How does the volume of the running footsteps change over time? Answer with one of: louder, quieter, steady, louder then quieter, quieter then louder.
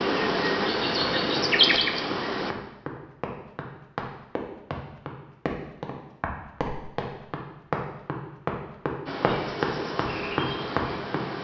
louder.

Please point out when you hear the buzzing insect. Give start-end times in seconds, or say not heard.
0.0-2.5, 9.1-11.3.